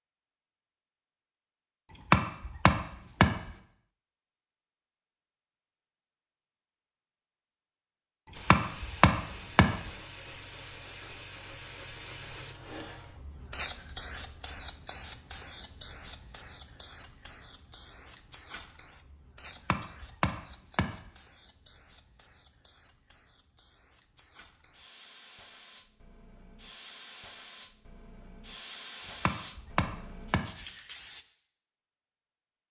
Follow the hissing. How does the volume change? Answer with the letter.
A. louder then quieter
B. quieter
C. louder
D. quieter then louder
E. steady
D.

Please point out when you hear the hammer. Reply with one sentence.
You can hear the hammer from 1.9 to 3.5 s, from 8.2 to 9.9 s, from 19.4 to 21.1 s and from 29.0 to 30.6 s.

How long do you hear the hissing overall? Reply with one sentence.
The hissing can be heard for 23 seconds in total.